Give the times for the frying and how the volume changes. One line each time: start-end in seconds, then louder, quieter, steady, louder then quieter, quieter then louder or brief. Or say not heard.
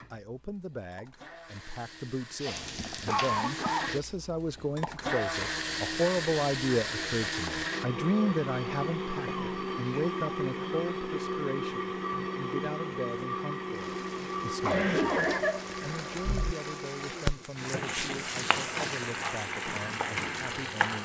2.4-4.2 brief
13.7-20.9 louder.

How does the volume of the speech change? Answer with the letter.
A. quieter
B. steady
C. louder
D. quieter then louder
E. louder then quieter
E.